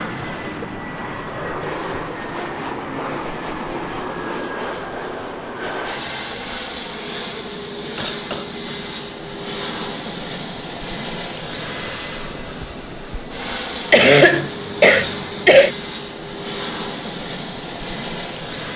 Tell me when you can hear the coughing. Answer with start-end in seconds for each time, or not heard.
0.1-0.5, 8.0-8.5, 13.9-15.8.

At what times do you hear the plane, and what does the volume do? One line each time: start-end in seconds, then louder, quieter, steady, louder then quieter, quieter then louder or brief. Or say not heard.
0.0-18.7 steady.